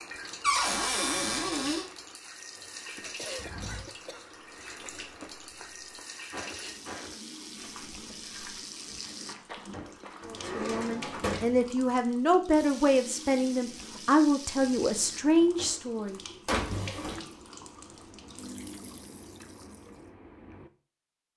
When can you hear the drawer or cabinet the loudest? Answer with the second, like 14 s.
1 s.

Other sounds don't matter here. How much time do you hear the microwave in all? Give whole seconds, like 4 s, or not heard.
not heard.